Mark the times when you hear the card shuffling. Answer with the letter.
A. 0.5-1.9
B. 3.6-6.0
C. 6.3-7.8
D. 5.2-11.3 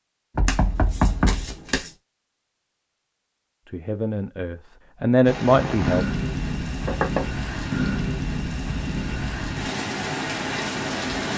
A.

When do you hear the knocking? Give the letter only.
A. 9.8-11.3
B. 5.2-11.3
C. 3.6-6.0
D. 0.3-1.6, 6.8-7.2
D.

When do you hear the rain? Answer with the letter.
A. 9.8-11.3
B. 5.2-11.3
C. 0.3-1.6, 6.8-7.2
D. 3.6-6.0
B.